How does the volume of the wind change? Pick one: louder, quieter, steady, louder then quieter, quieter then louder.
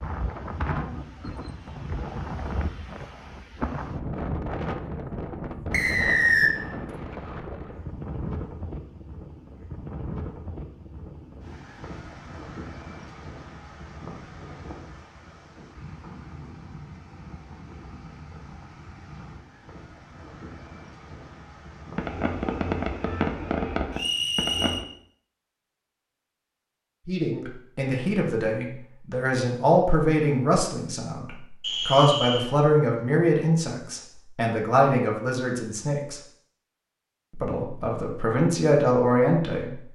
quieter.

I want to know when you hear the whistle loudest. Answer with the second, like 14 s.
6 s.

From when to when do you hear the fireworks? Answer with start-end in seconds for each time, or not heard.
21.9-24.9.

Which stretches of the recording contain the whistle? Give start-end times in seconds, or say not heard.
5.7-6.5, 23.9-24.9, 31.6-32.5.